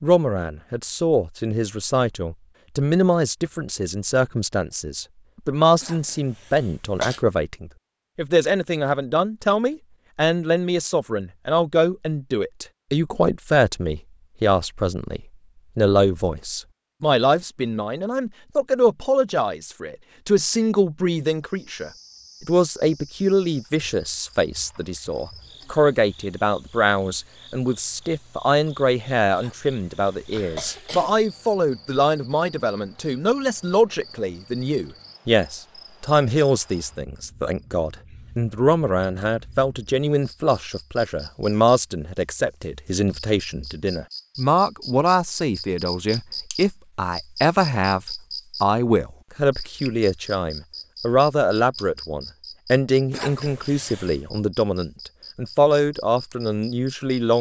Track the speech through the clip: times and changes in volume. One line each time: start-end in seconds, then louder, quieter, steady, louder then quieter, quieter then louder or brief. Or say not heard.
0.0-57.3 steady.